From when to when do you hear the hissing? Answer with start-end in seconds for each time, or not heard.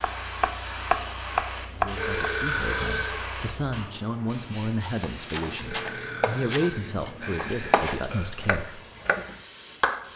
0.0-10.1.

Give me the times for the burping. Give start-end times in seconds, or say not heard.
1.9-3.4, 5.7-8.3.